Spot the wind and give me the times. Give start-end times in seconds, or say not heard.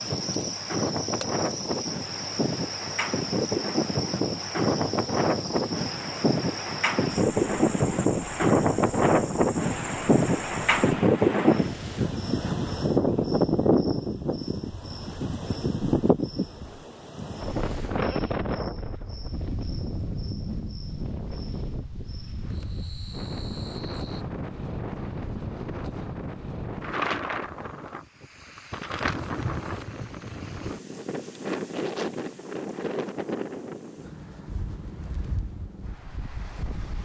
0.0-37.0.